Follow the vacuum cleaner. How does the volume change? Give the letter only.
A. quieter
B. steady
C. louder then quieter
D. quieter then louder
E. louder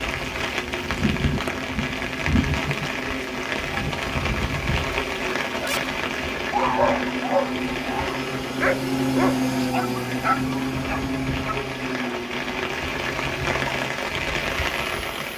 C.